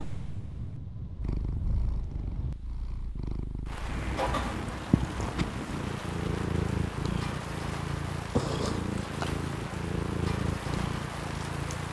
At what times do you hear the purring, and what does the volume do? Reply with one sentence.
You can hear the purring from 0.0 to 11.8 s, getting louder.